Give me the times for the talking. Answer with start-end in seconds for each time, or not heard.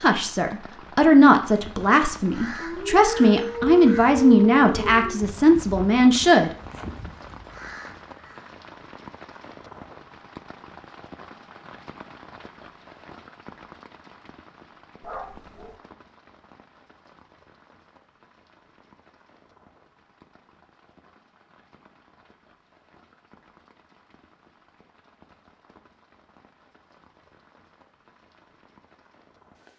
0.0-6.5.